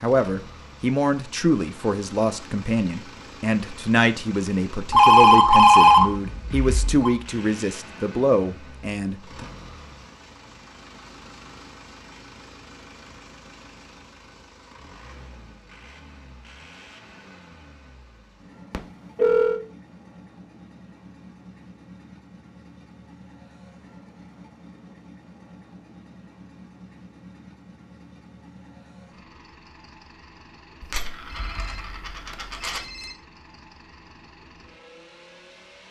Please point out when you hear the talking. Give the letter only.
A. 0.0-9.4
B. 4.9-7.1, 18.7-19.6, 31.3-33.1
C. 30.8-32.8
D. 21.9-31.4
A.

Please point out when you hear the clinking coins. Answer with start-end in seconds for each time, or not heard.
30.8-32.8.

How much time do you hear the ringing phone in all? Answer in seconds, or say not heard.
5 s.